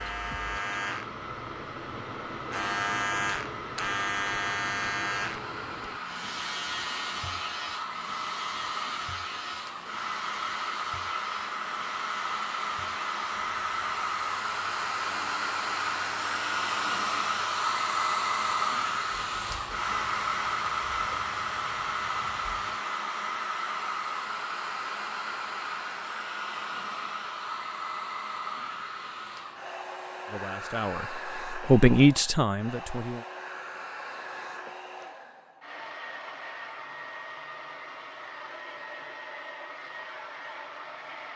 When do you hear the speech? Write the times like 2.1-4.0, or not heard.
30.2-33.2.